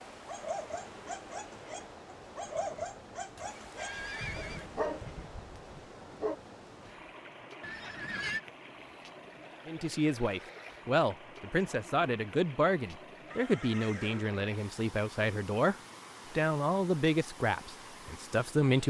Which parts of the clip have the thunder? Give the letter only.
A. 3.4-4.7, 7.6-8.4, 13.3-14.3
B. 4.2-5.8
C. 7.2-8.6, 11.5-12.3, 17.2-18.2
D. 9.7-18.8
B.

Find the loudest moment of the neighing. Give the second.
8 s.